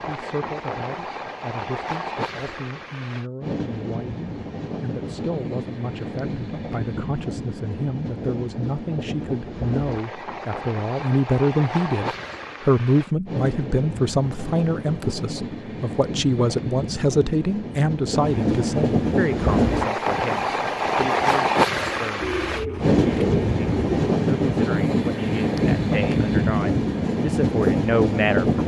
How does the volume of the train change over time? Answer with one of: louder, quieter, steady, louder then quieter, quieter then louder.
louder.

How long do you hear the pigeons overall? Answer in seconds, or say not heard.
2 s.